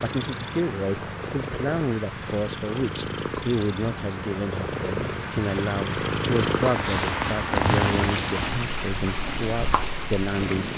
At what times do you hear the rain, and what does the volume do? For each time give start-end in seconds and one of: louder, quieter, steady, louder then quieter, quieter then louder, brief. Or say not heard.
0.0-10.7 louder.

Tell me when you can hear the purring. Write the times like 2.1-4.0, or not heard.
0.0-10.7.